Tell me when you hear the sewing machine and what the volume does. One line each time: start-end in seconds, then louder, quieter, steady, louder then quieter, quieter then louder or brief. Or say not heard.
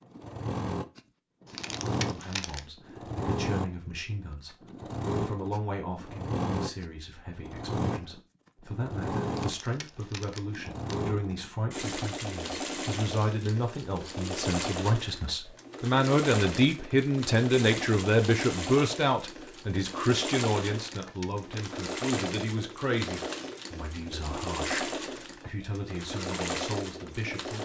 0.0-27.6 steady.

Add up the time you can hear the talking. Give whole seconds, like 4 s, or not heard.
25 s.